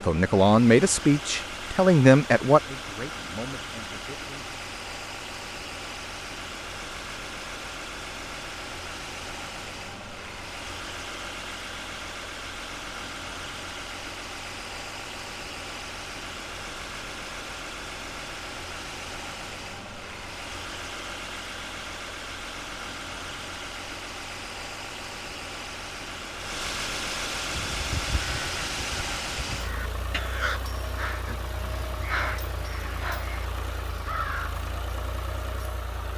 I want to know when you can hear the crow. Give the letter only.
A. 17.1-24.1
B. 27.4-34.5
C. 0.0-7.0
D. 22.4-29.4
B.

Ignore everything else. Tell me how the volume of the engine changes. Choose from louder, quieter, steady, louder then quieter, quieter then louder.
steady.